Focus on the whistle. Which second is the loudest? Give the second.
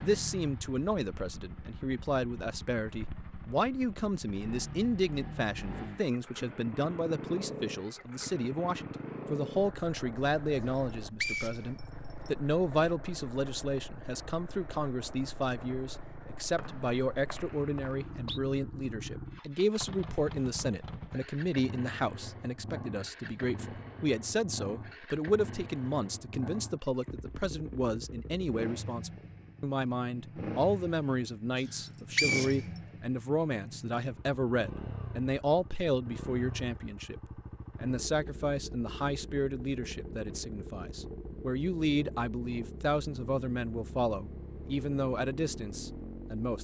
32 s.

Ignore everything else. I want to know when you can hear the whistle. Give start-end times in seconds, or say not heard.
10.7-12.3, 16.6-18.4, 31.6-32.6.